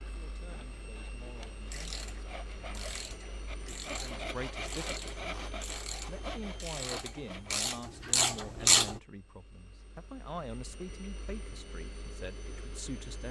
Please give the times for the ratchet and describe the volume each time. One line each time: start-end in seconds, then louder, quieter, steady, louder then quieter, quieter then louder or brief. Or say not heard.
1.5-9.0 louder.